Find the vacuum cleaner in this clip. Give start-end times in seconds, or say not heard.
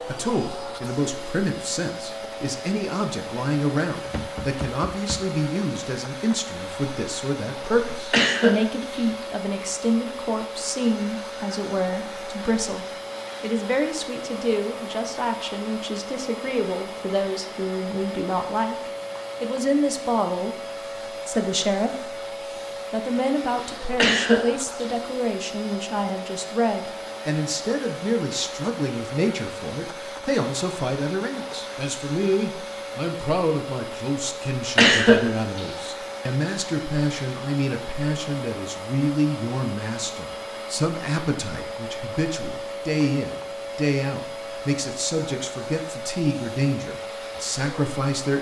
0.0-48.3.